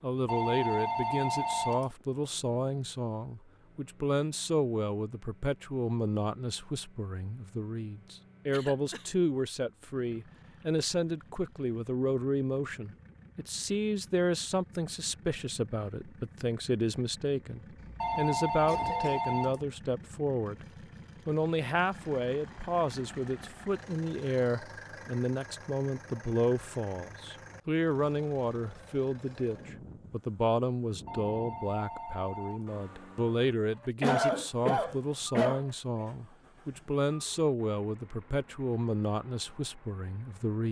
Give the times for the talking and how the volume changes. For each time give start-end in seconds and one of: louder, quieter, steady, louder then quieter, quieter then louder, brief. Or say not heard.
0.0-20.6 steady
21.2-40.6 steady.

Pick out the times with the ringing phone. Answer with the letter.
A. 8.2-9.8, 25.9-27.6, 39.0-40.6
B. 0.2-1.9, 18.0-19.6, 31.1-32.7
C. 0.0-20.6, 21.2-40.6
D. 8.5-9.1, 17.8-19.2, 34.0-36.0
B.